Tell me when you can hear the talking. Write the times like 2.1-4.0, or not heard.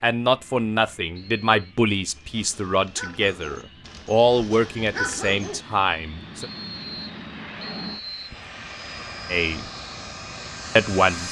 0.0-6.5, 9.2-9.7, 10.8-11.2.